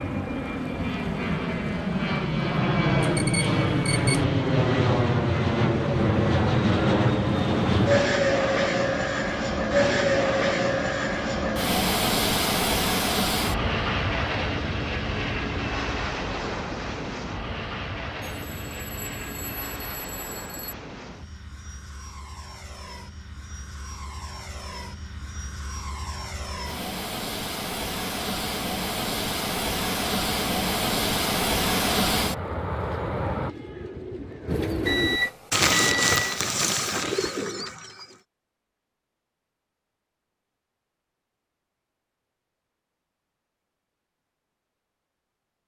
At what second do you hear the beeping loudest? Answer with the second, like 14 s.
35 s.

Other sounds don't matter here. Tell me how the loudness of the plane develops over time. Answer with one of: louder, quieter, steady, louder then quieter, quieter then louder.
quieter then louder.